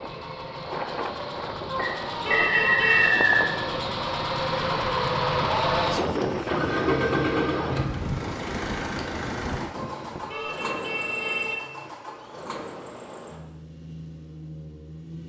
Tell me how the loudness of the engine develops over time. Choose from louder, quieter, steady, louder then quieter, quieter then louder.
louder then quieter.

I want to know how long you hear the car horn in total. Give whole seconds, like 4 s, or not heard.
3 s.